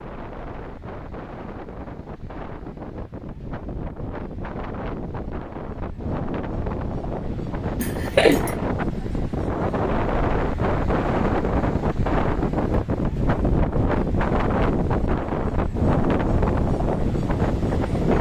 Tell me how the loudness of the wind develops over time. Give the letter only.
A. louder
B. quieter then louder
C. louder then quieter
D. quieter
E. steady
A.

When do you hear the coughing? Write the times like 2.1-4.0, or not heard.
7.8-8.6.